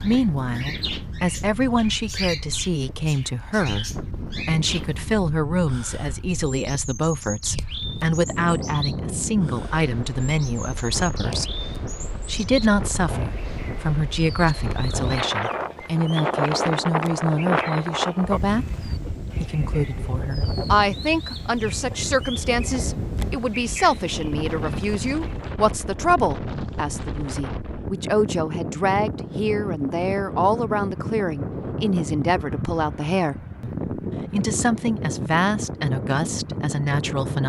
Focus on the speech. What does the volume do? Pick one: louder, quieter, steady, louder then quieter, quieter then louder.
steady.